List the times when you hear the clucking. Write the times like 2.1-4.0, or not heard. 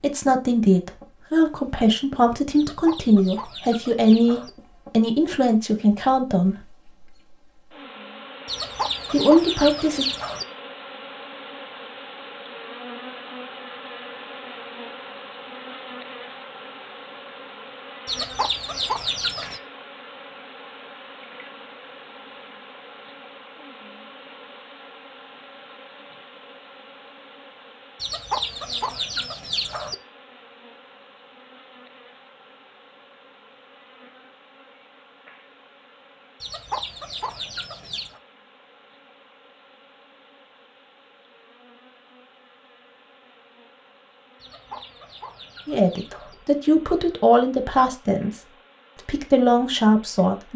2.5-4.5, 8.4-10.4, 18.1-19.6, 28.0-29.9, 36.4-38.2, 44.4-46.4.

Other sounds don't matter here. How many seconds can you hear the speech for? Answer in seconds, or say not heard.
12 s.